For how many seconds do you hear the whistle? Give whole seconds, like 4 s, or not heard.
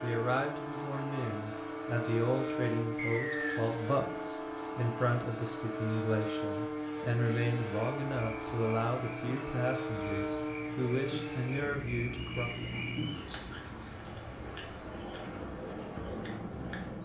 2 s.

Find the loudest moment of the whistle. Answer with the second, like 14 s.
3 s.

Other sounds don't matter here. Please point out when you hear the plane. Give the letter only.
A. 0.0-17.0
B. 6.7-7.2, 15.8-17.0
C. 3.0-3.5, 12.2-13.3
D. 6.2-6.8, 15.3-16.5
A.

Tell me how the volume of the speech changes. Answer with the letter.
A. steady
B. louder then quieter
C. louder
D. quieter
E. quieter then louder
A.